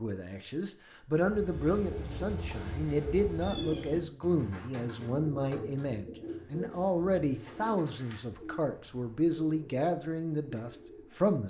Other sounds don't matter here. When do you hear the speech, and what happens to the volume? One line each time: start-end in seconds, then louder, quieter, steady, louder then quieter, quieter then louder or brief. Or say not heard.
0.0-11.4 steady.